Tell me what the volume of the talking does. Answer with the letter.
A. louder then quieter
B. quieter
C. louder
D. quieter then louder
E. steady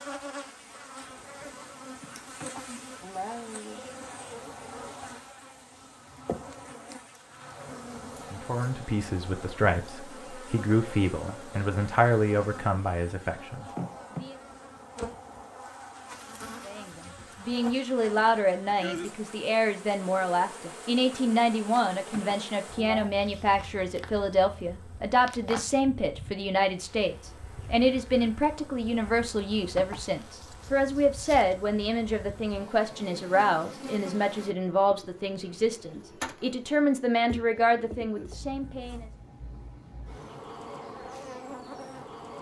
E.